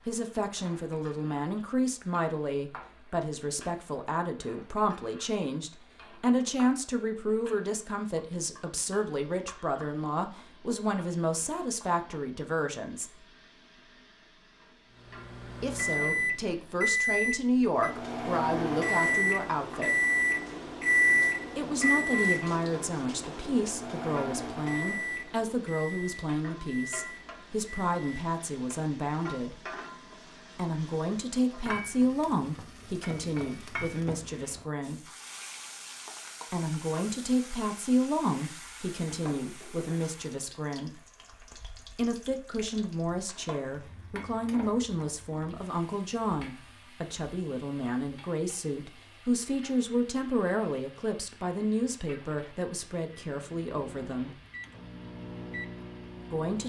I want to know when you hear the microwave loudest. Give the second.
21 s.